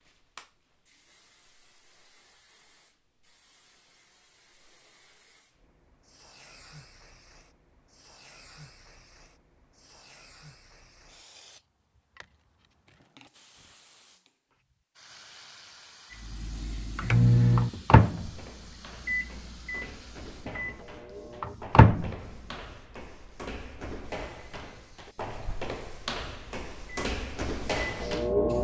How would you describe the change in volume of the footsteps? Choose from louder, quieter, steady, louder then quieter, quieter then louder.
louder.